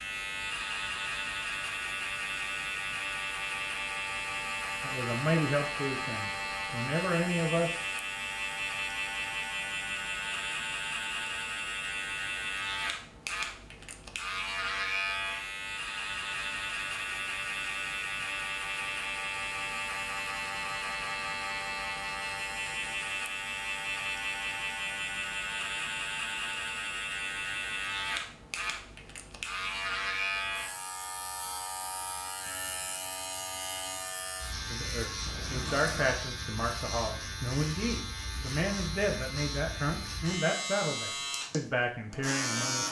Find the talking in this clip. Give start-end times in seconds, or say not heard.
4.8-7.8, 34.7-42.8.